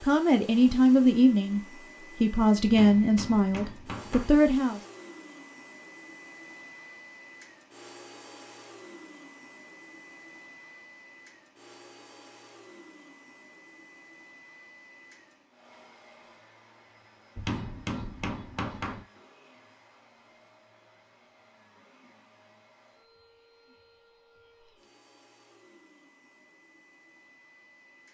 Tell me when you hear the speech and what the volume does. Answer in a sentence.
You can hear the speech from 0.0 to 4.8 s, at a steady volume.